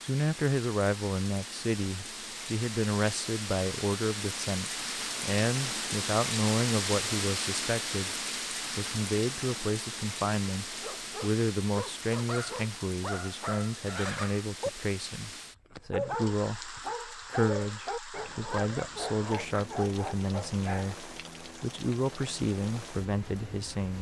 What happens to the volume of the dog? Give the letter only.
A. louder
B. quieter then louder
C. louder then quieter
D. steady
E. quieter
D.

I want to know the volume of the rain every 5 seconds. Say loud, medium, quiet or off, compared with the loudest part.
medium, loud, medium, medium, medium.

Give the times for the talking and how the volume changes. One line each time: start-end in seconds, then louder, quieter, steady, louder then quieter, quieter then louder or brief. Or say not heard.
0.0-23.9 steady.